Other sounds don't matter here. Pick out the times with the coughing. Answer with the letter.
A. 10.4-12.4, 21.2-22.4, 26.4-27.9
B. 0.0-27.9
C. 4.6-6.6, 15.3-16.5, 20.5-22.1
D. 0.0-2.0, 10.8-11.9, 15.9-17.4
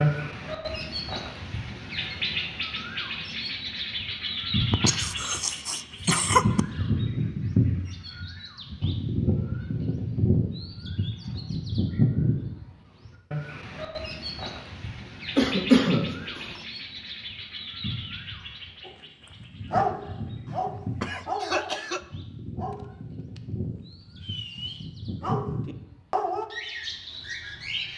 C.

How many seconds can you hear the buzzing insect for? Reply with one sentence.
The buzzing insect can't be heard in this clip.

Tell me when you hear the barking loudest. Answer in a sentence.
The loudest moment of the barking is at 20 seconds.